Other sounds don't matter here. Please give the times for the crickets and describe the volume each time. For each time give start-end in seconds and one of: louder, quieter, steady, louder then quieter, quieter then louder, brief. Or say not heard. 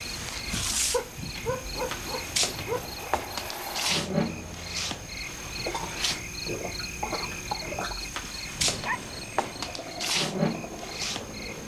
0.0-11.6 steady.